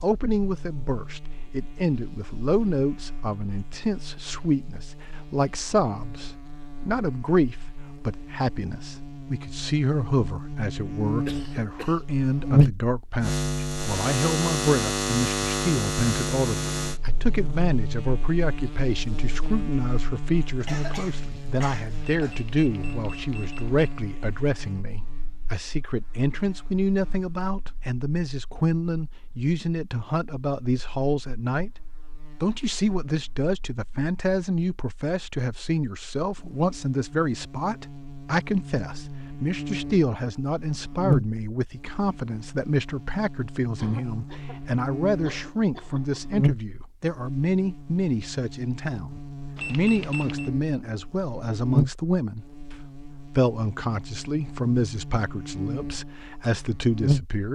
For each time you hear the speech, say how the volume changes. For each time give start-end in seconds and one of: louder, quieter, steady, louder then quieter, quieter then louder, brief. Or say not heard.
0.0-57.5 steady.